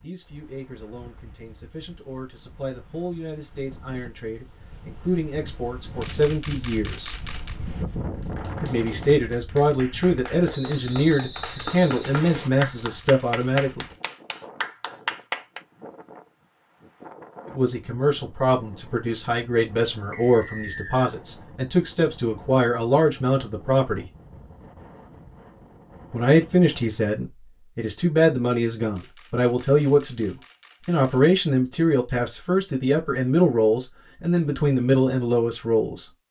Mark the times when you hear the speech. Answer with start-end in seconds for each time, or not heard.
0.0-7.2, 8.6-13.8, 17.4-24.1, 26.1-36.1.